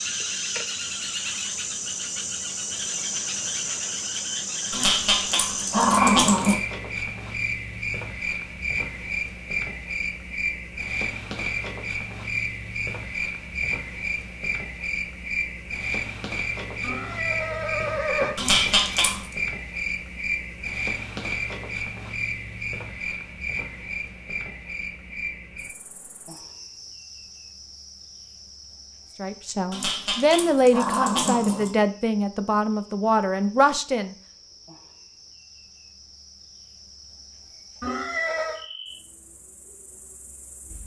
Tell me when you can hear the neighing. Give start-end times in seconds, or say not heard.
16.8-18.4, 37.8-38.6.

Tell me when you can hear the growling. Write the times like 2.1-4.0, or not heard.
4.7-6.5, 18.4-19.2, 29.7-31.7.